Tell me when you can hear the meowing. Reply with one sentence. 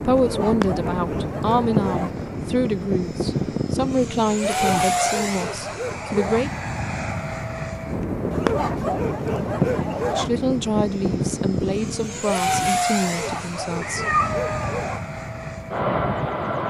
The meowing can be heard from 13.8 to 14.8 s.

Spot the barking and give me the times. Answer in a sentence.
The barking can be heard from 0.1 to 2.1 s, from 4.5 to 6.5 s, from 8.3 to 10.3 s and from 13.0 to 15.0 s.